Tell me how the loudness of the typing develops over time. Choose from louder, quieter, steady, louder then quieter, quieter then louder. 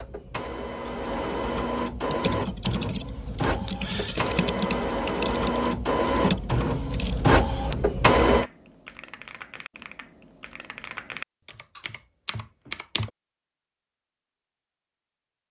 quieter then louder.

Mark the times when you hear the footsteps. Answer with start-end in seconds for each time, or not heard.
not heard.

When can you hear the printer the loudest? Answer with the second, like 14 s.
8 s.